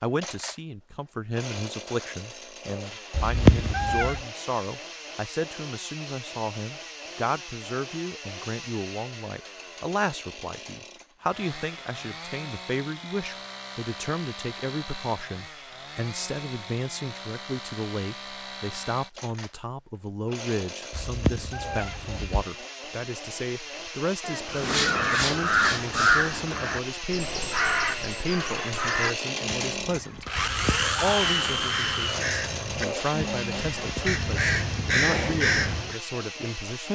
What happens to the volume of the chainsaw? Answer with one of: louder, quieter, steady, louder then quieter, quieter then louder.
louder.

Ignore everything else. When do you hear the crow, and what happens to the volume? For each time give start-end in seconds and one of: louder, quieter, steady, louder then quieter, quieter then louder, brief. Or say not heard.
24.5-36.0 quieter then louder.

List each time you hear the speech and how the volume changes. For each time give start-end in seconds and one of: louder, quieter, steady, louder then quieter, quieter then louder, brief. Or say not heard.
0.0-36.8 steady.